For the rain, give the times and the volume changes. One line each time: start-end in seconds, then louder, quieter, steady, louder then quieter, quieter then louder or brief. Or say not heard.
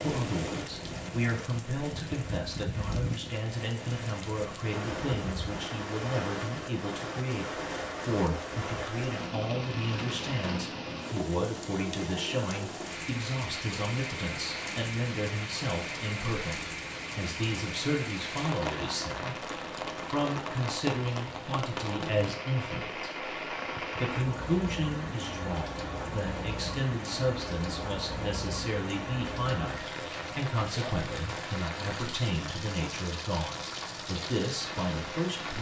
0.0-35.5 steady.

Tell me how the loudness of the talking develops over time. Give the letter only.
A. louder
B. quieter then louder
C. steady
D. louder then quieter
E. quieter
C.